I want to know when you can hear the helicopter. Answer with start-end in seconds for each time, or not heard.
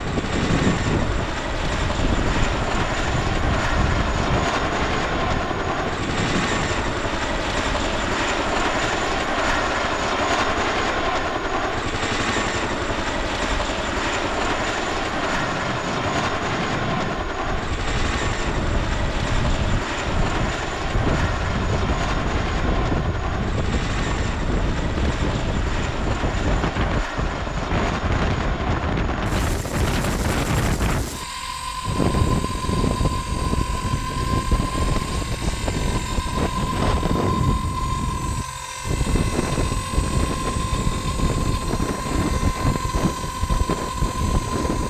0.0-44.8.